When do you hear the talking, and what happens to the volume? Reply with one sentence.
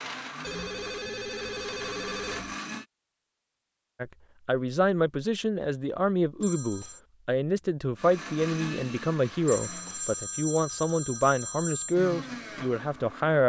The talking can be heard from 4.0 to 13.4 s, at a steady volume.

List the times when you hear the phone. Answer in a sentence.
The phone can be heard from 0.4 to 2.5 s, from 6.4 to 7.0 s and from 9.4 to 11.9 s.